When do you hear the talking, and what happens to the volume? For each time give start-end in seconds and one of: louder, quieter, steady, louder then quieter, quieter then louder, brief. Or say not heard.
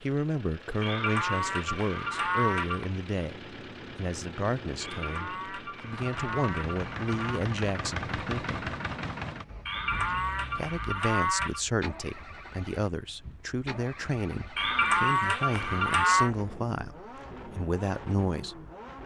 0.0-8.7 steady
10.6-18.6 steady.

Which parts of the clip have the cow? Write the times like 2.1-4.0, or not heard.
0.8-2.9, 4.8-7.5, 9.7-11.6, 14.6-16.3.